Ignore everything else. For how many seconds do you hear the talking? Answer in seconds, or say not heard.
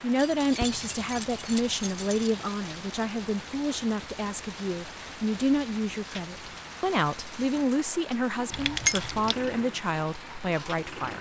11 s.